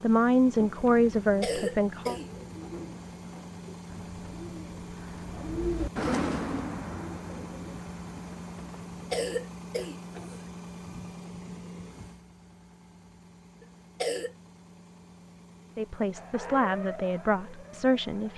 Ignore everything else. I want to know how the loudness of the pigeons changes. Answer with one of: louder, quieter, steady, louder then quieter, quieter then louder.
louder then quieter.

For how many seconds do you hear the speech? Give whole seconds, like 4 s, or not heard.
5 s.